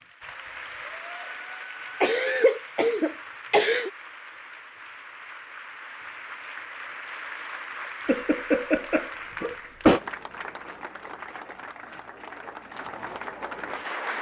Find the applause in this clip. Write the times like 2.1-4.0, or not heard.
0.0-14.1.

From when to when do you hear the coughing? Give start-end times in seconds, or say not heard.
2.0-3.9, 8.1-10.0.